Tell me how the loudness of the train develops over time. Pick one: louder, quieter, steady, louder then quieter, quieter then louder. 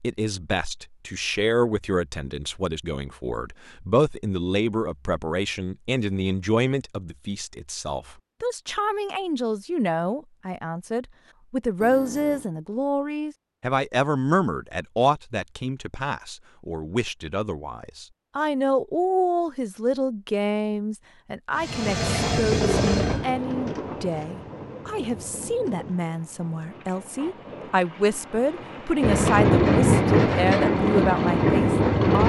quieter then louder.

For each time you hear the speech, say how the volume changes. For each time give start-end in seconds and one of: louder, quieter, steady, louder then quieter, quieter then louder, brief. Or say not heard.
0.0-32.2 steady.